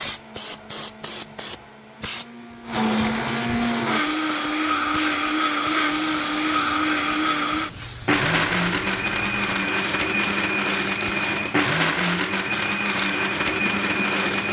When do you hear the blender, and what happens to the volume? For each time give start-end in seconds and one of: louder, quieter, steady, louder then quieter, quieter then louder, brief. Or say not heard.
0.0-14.4 louder.